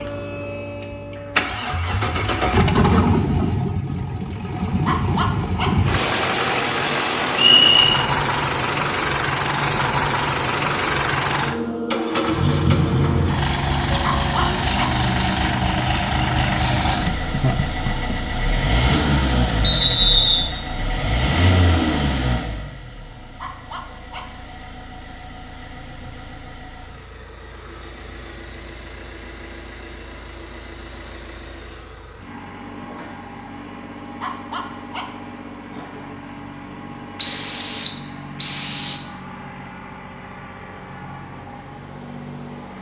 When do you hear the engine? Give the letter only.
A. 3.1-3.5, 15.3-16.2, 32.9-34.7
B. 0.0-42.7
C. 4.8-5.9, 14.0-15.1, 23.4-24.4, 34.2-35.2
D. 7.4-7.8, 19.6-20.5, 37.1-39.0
B.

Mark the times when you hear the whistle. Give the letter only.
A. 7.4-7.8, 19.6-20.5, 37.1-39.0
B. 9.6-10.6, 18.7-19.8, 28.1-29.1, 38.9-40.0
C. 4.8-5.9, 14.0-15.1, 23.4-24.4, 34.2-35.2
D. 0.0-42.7
A.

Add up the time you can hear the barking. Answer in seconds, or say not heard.
4 s.